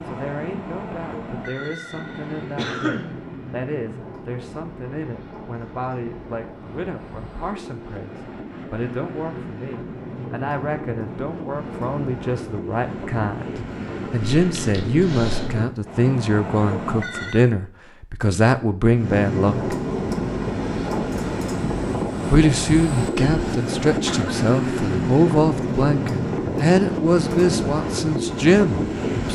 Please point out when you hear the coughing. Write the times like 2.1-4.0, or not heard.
2.5-3.1, 14.2-15.6, 23.1-24.4.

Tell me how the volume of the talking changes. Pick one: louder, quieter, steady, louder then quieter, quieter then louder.
louder.